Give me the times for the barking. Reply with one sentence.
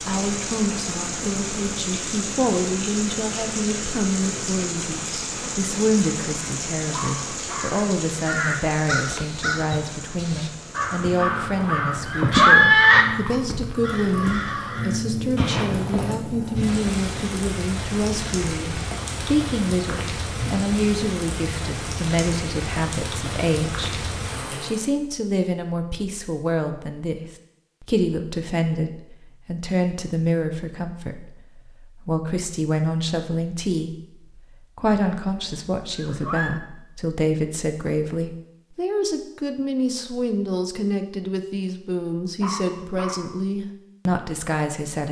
You can hear the barking from 6.9 to 7.8 s and from 42.4 to 43.4 s.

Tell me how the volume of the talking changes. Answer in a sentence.
The volume of the talking stays about the same.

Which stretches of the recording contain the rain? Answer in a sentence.
The rain can be heard from 0.0 to 24.9 s.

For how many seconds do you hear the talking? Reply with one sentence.
The talking can be heard for 45 seconds in total.